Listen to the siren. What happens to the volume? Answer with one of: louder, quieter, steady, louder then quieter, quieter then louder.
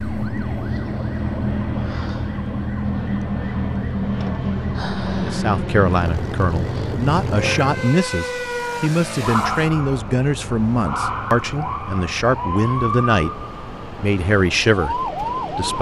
steady.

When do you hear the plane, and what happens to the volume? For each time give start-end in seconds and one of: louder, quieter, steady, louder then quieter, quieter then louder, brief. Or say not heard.
0.0-15.7 quieter.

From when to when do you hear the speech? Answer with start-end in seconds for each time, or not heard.
5.0-13.3, 13.9-15.7.